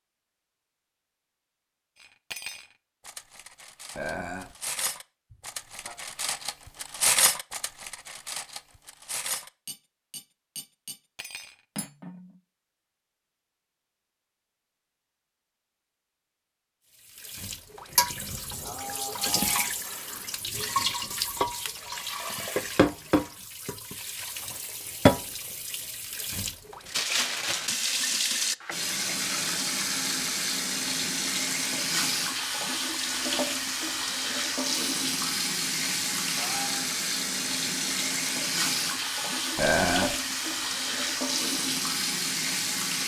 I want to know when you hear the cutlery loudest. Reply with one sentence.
The loudest moment of the cutlery is at 7 seconds.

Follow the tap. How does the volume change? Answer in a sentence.
The volume of the tap stays about the same.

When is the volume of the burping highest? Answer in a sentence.
The volume of the burping peaks at 40 seconds.